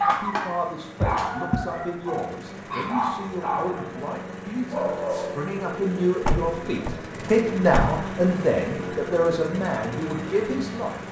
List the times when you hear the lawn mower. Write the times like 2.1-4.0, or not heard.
0.0-11.0.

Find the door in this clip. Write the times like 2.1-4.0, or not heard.
1.0-1.6, 6.2-8.0.